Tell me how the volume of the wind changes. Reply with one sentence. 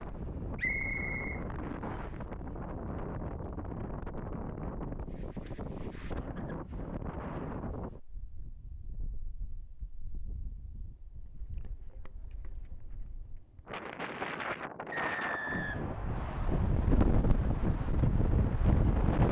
The loudness of the wind goes down, then up.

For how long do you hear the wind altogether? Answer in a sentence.
The wind can be heard for 19 seconds in total.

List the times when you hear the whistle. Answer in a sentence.
You can hear the whistle from 0.6 to 2.1 s and from 14.9 to 16.6 s.